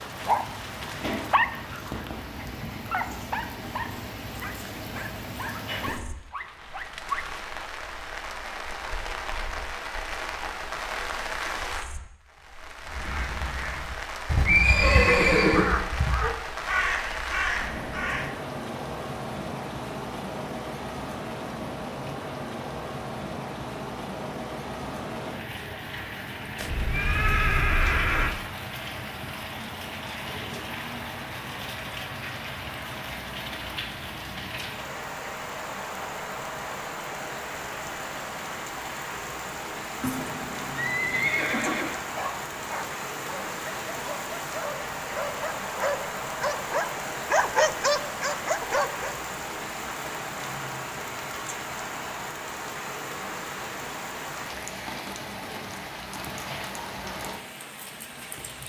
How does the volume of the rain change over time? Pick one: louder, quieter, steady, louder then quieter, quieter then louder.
steady.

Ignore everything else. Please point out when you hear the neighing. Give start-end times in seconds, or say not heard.
14.4-15.8, 26.6-28.4, 40.0-42.0.